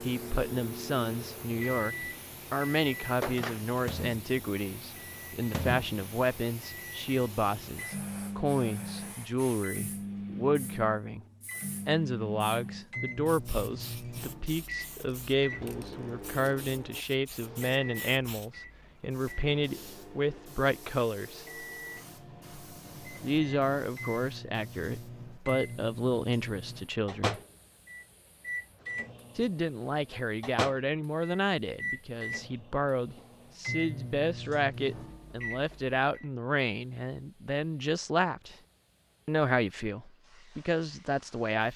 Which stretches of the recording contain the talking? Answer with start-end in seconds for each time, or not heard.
0.0-11.2, 11.8-21.4, 23.2-27.4, 29.4-38.5, 39.2-41.7.